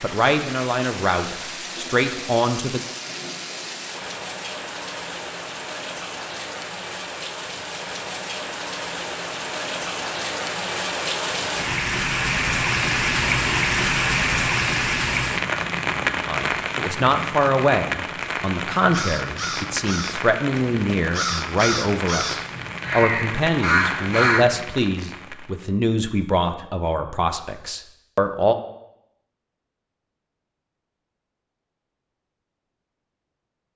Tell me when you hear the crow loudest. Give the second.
24 s.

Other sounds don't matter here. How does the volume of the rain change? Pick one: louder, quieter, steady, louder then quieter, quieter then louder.
louder then quieter.